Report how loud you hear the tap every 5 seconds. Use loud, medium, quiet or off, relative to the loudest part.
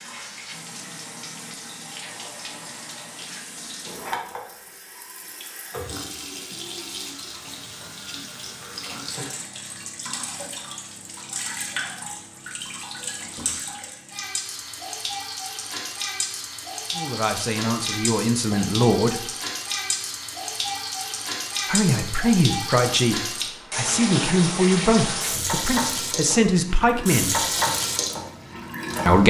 medium, medium, medium, loud, loud, loud.